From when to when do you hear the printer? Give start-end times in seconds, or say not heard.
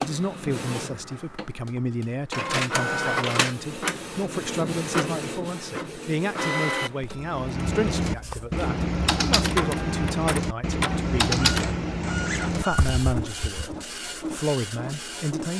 0.0-15.5.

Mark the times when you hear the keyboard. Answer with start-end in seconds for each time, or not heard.
7.2-13.8.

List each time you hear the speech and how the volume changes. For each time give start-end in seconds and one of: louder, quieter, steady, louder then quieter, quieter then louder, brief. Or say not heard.
0.0-15.5 steady.